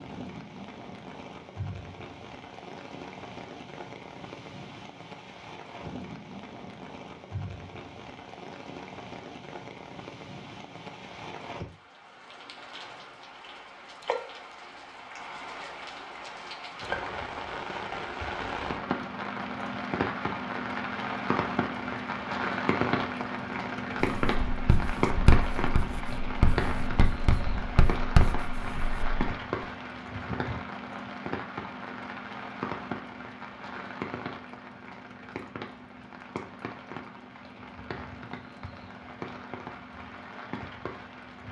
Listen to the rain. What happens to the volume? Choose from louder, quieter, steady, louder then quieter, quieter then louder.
louder then quieter.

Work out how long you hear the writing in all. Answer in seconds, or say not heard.
5 s.